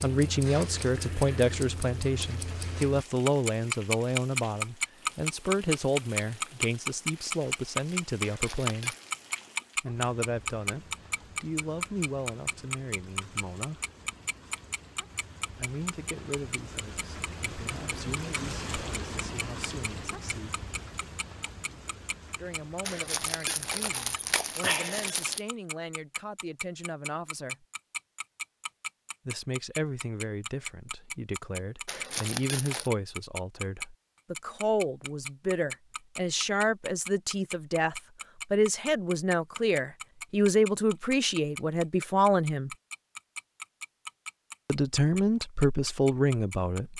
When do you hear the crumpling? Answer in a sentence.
The crumpling can be heard from 8.2 to 9.0 s, from 22.9 to 25.4 s and from 31.9 to 32.9 s.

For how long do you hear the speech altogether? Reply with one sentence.
The speech can be heard for 39 seconds in total.